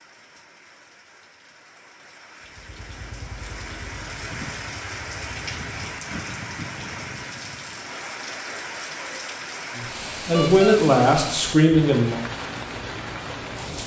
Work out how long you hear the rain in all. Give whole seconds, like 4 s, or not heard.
14 s.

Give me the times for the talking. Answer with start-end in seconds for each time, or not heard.
9.8-12.2.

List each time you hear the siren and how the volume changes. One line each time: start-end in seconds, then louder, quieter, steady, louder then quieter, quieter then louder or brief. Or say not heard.
not heard.